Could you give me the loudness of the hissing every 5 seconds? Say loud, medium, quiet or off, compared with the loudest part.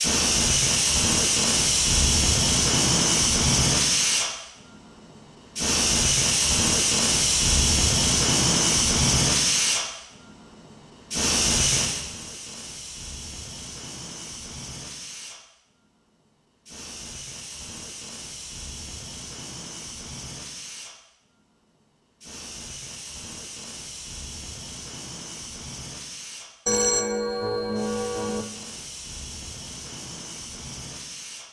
loud, loud, medium, quiet, quiet, quiet, quiet.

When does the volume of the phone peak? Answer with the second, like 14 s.
27 s.